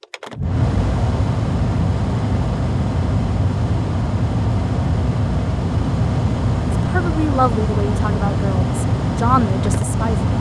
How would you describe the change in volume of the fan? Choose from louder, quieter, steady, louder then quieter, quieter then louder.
steady.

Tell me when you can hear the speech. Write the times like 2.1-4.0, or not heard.
6.8-10.2.